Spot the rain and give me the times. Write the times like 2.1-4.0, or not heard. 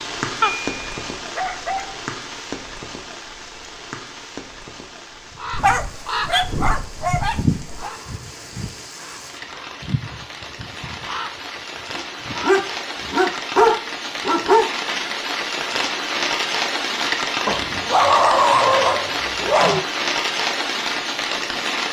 0.0-21.8.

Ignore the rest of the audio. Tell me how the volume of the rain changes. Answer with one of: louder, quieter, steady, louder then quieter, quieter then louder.
quieter then louder.